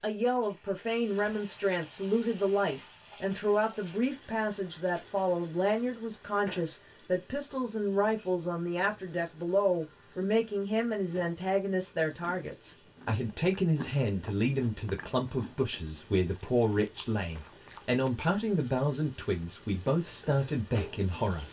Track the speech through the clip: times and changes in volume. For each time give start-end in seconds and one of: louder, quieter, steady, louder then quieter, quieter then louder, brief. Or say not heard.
0.0-21.4 steady.